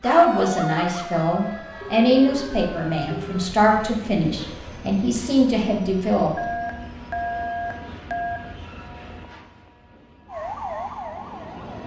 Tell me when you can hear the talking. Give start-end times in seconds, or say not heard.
0.0-6.3.